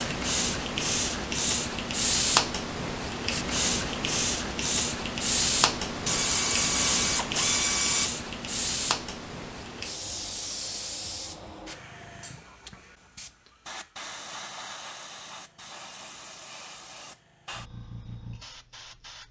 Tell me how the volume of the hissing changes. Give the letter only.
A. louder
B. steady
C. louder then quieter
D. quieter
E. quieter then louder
D.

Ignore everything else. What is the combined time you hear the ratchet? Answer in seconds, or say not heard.
2 s.